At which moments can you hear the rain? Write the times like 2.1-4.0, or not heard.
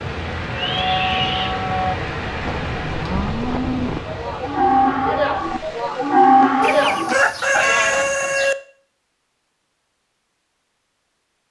0.0-6.8.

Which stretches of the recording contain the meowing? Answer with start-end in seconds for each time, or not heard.
0.5-1.6, 7.5-8.1.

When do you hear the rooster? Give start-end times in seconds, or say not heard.
6.6-8.6.